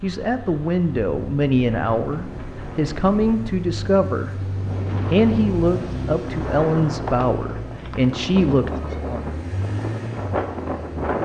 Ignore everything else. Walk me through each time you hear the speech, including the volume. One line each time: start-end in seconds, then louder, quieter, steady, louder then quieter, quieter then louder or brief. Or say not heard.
0.0-9.3 steady.